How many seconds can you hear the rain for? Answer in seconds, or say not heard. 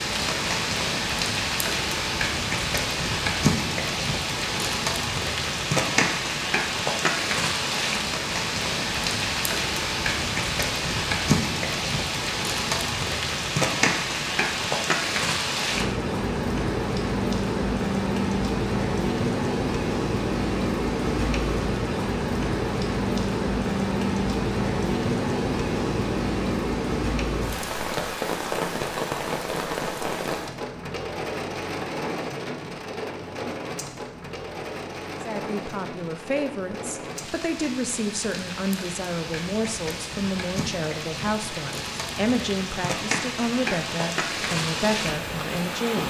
46 s.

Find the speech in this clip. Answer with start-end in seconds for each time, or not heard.
35.2-46.0.